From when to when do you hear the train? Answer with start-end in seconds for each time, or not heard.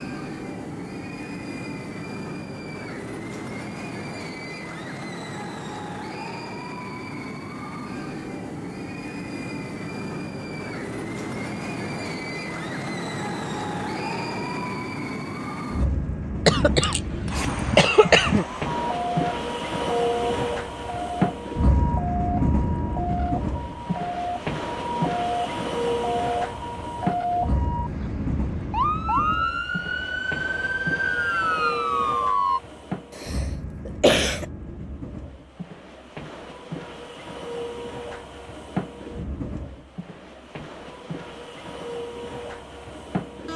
0.0-43.5.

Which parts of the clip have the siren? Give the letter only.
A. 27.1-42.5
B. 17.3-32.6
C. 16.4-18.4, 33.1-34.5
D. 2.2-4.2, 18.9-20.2
B.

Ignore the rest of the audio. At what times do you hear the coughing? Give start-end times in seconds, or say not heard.
16.4-18.4, 33.1-34.5.